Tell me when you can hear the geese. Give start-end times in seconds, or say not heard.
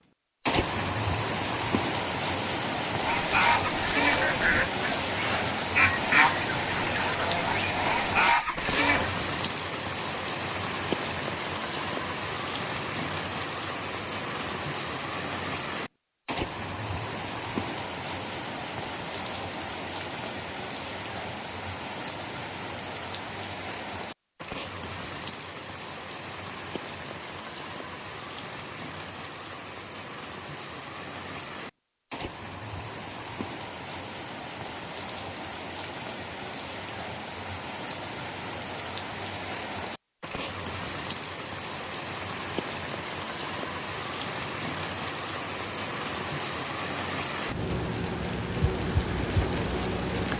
3.0-9.1.